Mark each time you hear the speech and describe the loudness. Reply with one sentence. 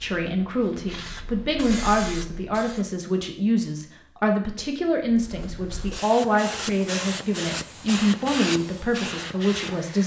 The speech can be heard from 0.0 to 10.0 s, at a steady volume.